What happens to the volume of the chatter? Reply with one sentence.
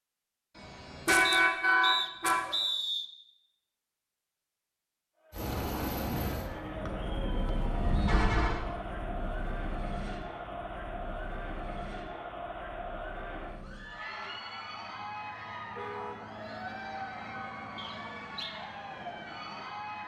The volume of the chatter stays about the same.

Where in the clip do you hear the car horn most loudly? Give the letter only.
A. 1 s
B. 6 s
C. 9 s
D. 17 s
A.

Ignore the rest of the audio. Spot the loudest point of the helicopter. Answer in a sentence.
The loudest moment of the helicopter is at 6 seconds.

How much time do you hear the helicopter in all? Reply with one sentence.
The helicopter can be heard for 15 seconds in total.